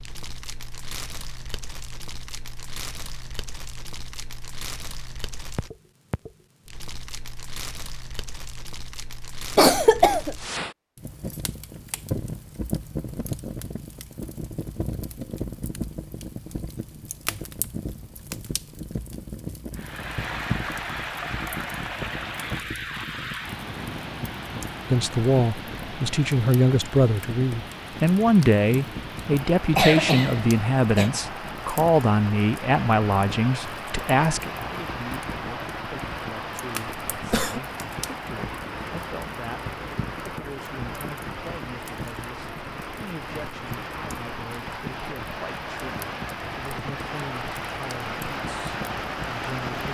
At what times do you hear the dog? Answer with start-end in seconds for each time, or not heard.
not heard.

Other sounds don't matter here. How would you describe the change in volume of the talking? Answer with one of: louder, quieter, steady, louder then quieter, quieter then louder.
quieter.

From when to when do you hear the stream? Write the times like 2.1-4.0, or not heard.
19.7-49.8.